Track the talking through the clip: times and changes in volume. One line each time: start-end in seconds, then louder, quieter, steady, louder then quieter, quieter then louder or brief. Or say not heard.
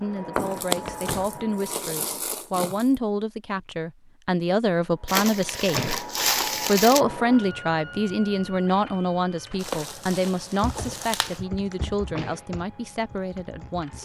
0.0-6.0 louder
6.7-14.0 quieter.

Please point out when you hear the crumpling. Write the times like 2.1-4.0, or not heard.
0.3-3.0, 5.0-7.0, 9.6-11.4.